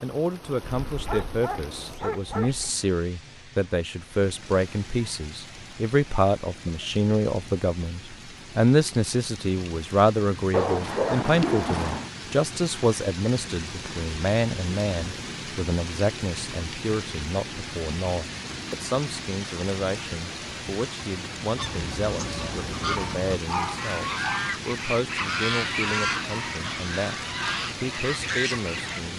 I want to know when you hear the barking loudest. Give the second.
11 s.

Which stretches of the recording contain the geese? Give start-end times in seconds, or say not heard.
21.6-29.0.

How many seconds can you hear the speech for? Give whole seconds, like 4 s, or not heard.
29 s.